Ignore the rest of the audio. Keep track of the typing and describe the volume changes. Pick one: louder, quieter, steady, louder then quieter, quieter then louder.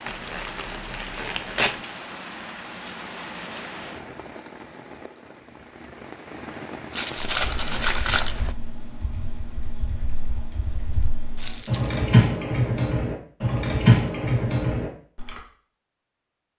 louder.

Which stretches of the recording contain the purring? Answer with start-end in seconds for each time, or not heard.
not heard.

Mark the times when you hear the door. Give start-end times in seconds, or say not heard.
not heard.